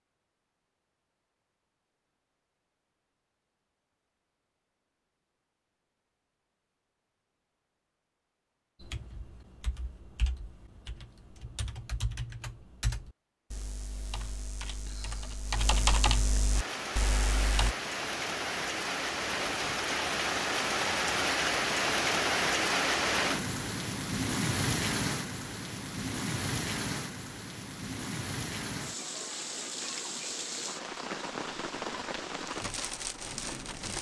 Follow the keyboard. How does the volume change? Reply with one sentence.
The volume of the keyboard goes up.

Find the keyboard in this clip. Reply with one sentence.
You can hear the keyboard from 8.8 to 17.8 s.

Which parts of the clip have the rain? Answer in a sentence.
The rain can be heard from 16.5 to 33.9 s.